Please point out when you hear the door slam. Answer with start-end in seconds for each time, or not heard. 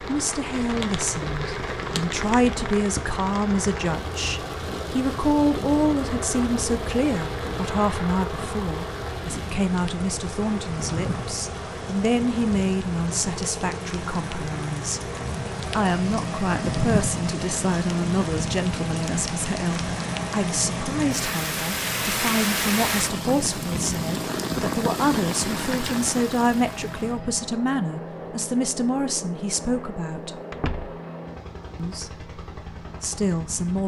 30.5-30.9.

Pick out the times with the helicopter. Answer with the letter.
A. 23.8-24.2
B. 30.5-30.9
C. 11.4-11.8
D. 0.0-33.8
D.